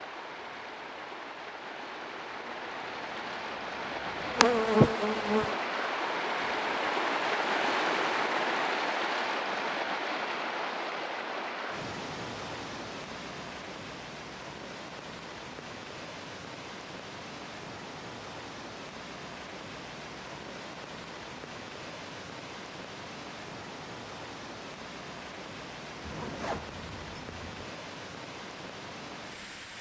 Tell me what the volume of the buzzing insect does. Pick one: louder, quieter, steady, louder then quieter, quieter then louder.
louder.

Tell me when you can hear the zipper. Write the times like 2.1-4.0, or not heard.
26.0-27.8.